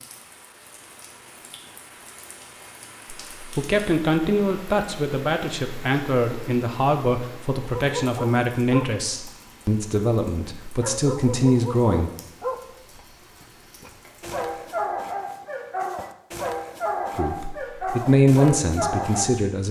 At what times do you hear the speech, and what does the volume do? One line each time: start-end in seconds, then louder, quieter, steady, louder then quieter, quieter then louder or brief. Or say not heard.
3.5-12.1 steady
17.1-19.6 brief.